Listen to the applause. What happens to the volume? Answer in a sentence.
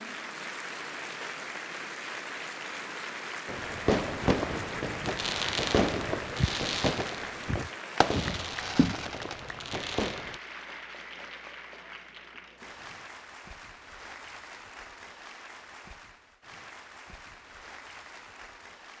The volume of the applause goes down.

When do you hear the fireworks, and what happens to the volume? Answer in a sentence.
The fireworks can be heard from 3.5 to 10.4 s, getting quieter.